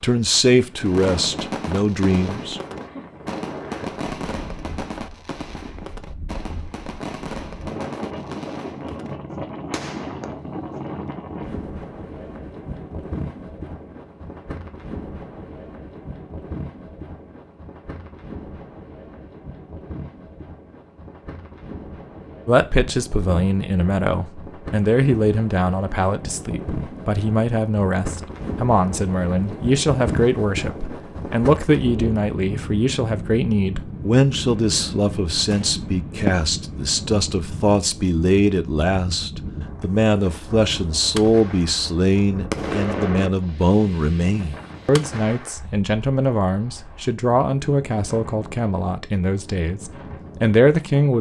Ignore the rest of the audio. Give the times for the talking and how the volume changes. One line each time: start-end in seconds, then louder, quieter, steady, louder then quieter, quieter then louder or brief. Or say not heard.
0.0-2.6 brief
22.4-51.1 steady.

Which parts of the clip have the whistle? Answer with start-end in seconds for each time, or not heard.
not heard.